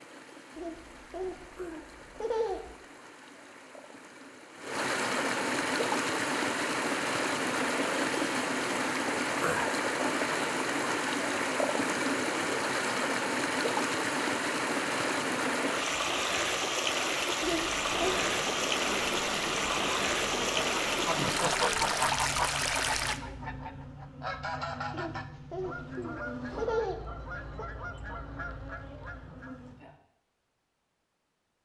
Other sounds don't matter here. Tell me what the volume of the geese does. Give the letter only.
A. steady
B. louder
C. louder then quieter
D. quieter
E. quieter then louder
D.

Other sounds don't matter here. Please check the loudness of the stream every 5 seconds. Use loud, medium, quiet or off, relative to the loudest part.
quiet, loud, loud, loud, loud, off, off.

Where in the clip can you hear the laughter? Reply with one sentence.
The laughter can be heard from 0.6 to 2.8 s, from 17.4 to 18.2 s and from 24.9 to 27.6 s.